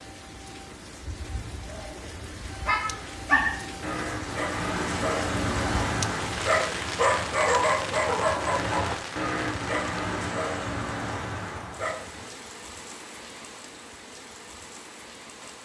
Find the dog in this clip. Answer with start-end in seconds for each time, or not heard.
1.0-12.3.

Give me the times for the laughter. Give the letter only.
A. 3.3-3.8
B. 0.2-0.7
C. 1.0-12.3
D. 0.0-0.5
A.